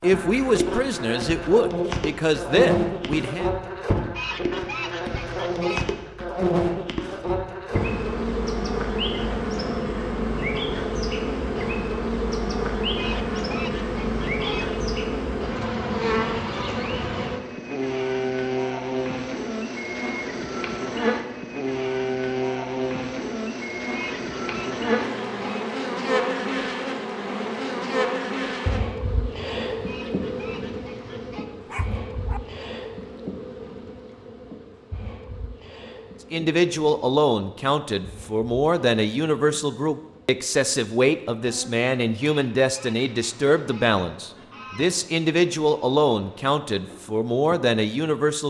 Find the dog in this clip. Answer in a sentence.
The dog can be heard from 31.6 to 32.4 s.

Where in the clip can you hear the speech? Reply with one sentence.
The speech can be heard from 0.0 to 3.5 s and from 36.3 to 48.4 s.